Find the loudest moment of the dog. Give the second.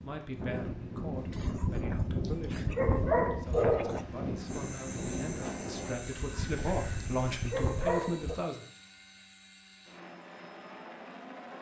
4 s.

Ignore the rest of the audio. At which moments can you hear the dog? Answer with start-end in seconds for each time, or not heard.
1.3-4.0, 6.0-8.3.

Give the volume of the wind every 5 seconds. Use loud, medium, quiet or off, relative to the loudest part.
loud, loud, off.